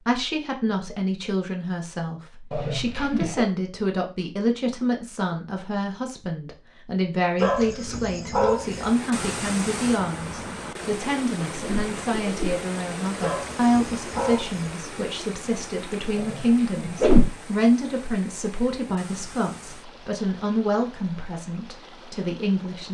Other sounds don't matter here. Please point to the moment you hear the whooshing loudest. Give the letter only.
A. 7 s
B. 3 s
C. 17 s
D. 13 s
C.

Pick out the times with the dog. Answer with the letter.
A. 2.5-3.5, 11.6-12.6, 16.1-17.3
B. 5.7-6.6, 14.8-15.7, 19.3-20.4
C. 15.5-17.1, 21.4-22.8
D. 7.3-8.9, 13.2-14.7
D.